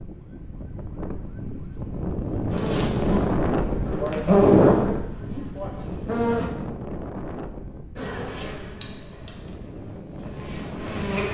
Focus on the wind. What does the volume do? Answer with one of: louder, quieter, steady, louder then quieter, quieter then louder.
louder then quieter.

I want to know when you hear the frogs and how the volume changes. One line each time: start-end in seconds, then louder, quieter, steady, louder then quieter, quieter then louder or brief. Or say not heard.
not heard.